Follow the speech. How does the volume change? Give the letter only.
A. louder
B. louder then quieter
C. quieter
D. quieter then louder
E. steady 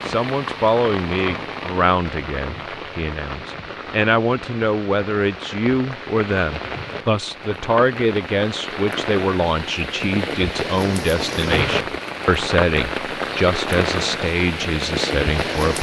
E.